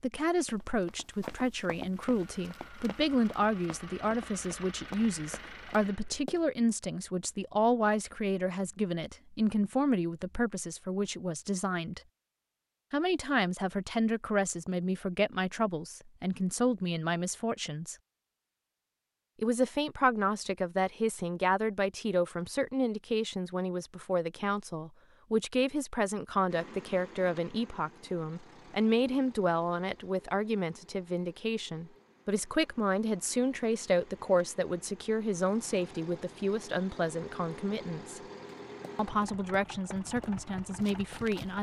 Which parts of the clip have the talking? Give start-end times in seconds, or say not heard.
0.0-12.0, 12.9-17.9, 19.4-38.2, 39.0-41.5.